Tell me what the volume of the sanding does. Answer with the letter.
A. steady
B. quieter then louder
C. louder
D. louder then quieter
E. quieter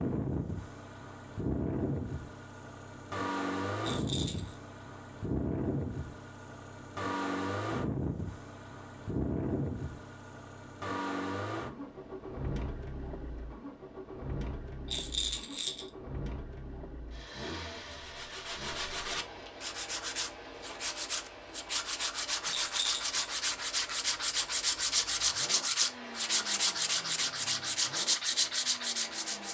C.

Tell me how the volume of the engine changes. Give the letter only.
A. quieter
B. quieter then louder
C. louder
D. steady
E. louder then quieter
A.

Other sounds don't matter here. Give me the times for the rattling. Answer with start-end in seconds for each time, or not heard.
3.8-4.5, 14.8-15.9, 22.6-23.2.